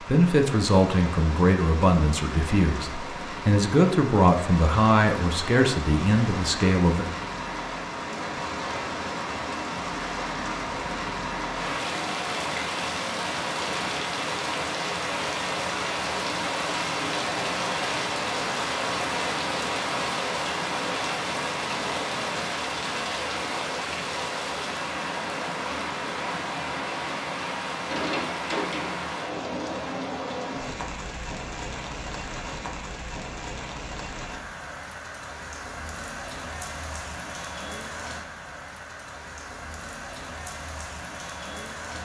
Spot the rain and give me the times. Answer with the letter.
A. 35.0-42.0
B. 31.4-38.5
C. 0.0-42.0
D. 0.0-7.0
C.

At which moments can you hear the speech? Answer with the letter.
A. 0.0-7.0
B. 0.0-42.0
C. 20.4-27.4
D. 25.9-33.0
A.